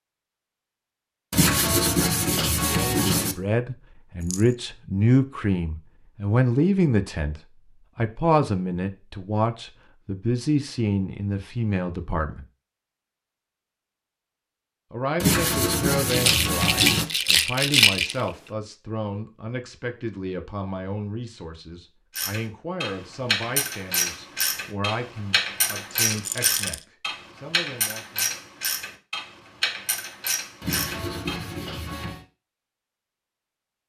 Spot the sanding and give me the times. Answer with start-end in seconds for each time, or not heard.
1.3-3.4, 15.2-17.1, 30.6-32.2.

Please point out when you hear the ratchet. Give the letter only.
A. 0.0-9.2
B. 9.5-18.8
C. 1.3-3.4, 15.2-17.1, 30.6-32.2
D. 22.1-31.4
D.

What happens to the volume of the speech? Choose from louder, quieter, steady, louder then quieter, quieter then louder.
quieter.